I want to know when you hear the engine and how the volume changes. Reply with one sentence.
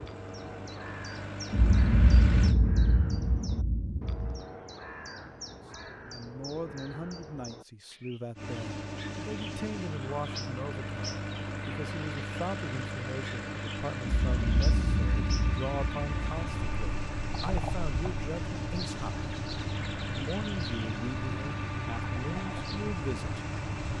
You can hear the engine briefly from 0.0 to 2.5 s; and from 8.3 to 23.9 s, at a steady volume.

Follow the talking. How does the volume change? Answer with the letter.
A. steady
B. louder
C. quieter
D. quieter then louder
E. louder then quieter
A.